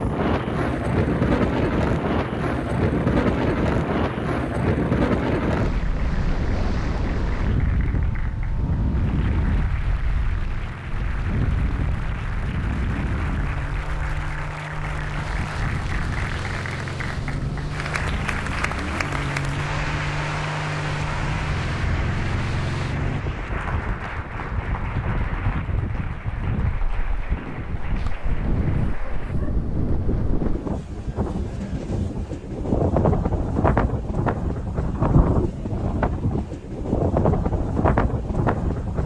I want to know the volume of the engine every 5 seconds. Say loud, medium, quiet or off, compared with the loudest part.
off, medium, medium, loud, loud, off, off, off.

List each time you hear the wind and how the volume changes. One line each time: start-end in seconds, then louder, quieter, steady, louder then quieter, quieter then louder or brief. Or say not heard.
0.0-39.0 quieter then louder.